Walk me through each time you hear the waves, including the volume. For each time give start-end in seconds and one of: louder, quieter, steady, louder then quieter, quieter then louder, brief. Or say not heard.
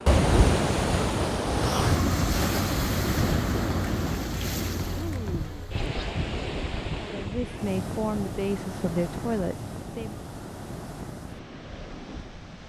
0.0-12.6 quieter.